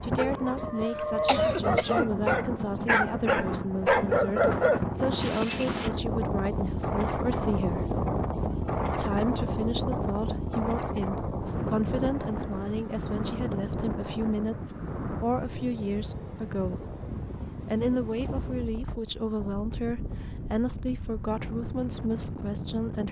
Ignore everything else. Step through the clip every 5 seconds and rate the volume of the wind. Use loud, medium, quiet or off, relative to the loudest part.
loud, loud, loud, medium, medium.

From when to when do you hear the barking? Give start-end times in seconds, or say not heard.
0.0-5.9.